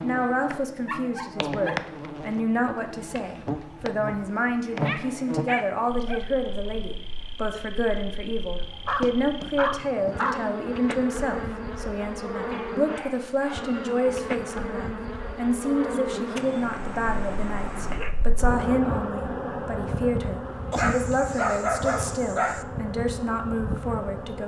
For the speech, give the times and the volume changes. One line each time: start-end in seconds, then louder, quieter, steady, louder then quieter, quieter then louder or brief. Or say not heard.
0.0-24.4 steady.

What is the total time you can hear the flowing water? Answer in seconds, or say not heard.
not heard.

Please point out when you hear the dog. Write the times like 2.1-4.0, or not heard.
0.8-1.8, 4.7-6.2, 8.8-10.4, 12.5-14.2, 16.4-18.1, 20.7-22.6.